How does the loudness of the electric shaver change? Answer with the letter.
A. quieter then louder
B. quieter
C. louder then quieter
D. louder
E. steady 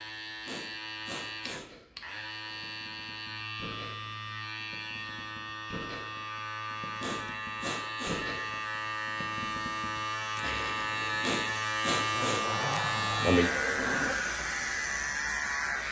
D.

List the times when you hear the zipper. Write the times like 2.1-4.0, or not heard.
12.1-14.2.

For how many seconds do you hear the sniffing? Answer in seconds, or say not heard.
4 s.